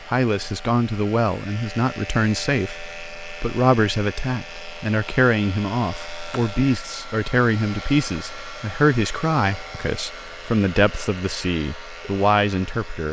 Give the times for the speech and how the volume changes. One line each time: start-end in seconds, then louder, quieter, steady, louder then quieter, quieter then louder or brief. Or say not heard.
0.0-13.0 steady.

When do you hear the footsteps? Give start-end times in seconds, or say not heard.
not heard.